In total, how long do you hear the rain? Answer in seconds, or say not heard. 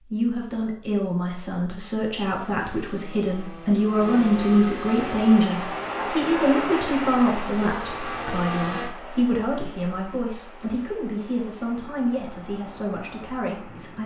9 s.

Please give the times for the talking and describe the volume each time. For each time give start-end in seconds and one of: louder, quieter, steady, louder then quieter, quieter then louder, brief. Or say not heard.
0.0-14.0 louder then quieter.